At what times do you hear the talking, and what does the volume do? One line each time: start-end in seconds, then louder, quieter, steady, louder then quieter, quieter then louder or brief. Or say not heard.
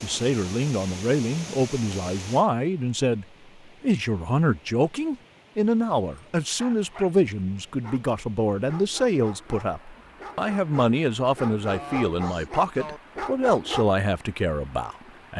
0.0-15.3 steady.